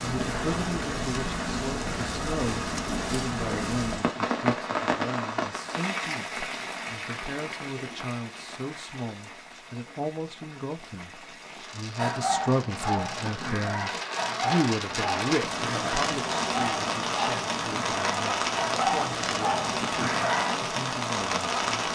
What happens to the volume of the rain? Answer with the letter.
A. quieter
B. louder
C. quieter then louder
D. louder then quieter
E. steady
C.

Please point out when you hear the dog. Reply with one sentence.
The dog can be heard from 11.9 to 20.6 s.